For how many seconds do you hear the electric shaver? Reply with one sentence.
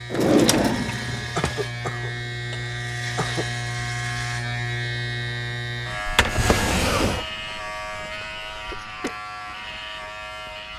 You can hear the electric shaver for 11 seconds altogether.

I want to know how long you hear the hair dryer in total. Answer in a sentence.
The hair dryer can't be heard in this clip.